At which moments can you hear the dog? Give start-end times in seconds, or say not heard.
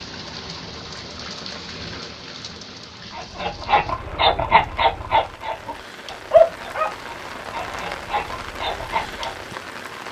3.1-9.3.